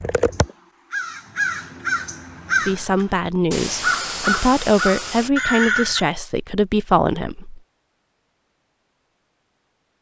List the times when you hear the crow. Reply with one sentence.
The crow can be heard from 0.0 to 6.0 s.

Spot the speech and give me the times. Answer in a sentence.
You can hear the speech from 2.6 to 7.6 s.